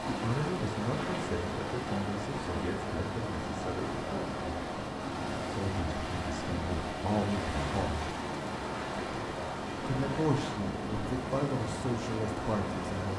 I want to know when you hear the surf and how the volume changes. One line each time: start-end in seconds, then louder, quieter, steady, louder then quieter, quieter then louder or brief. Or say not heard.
0.0-13.1 steady.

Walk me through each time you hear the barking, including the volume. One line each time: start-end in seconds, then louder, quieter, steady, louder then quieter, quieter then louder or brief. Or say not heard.
not heard.